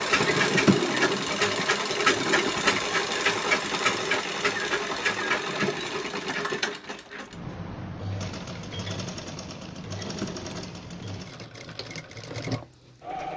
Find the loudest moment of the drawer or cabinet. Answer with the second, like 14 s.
1 s.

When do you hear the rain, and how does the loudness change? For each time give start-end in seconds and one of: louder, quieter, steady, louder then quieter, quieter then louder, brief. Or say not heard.
not heard.